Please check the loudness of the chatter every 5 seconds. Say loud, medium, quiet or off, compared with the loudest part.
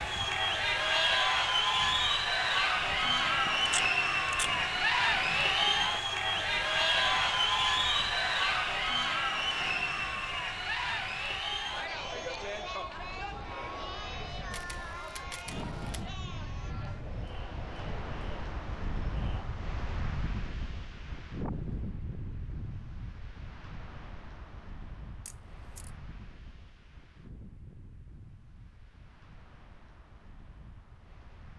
loud, loud, medium, quiet, off, off, off.